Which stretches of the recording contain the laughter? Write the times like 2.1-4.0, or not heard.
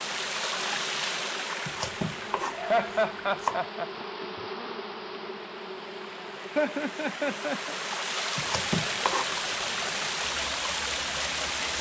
2.5-3.9, 6.5-7.8.